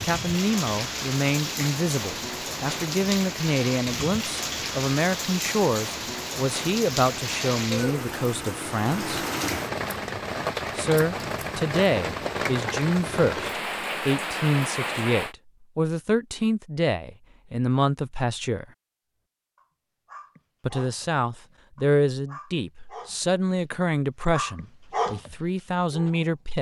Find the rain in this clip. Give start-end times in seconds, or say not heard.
0.0-15.3.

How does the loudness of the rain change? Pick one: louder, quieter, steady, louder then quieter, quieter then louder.
steady.